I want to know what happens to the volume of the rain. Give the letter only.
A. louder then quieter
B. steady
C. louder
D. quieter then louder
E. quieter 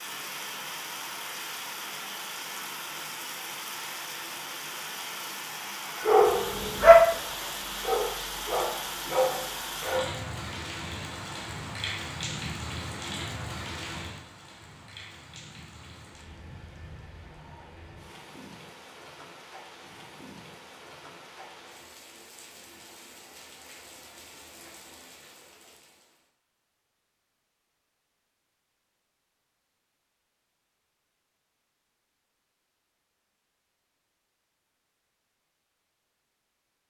E.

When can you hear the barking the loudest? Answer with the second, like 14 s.
7 s.